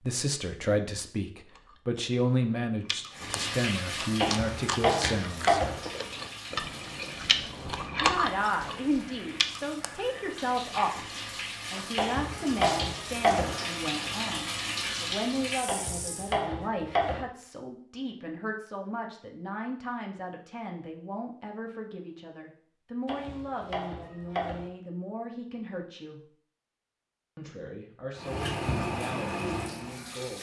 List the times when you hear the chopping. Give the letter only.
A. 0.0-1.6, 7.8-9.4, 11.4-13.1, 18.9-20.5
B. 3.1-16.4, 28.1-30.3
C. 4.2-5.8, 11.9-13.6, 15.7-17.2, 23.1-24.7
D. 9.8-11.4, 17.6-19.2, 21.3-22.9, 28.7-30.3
C.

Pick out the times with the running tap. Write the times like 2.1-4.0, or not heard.
3.1-16.4, 28.1-30.3.